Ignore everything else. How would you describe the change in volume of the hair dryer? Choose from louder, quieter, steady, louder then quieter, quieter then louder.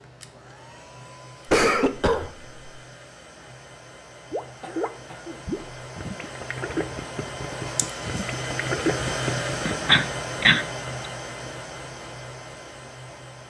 louder then quieter.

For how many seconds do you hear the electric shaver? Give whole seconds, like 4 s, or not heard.
not heard.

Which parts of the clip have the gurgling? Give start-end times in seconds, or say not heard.
4.3-9.8.